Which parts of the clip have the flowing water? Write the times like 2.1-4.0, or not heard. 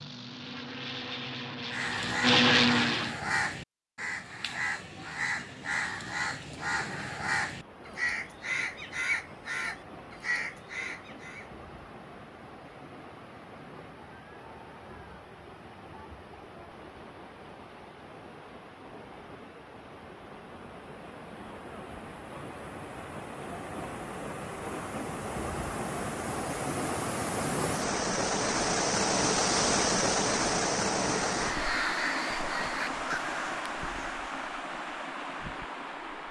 7.4-36.2.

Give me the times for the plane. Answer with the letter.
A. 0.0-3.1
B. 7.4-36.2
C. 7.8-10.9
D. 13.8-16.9
A.